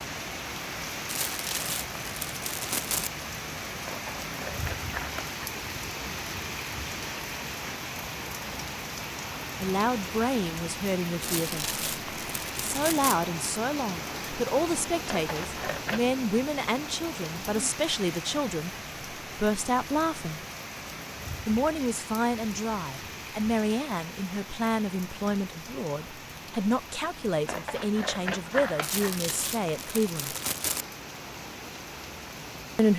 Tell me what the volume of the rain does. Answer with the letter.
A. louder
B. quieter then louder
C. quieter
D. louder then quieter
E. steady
C.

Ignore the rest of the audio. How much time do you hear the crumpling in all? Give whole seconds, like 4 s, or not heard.
6 s.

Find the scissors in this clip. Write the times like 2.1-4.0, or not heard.
3.9-5.4, 15.1-16.0, 27.4-29.2.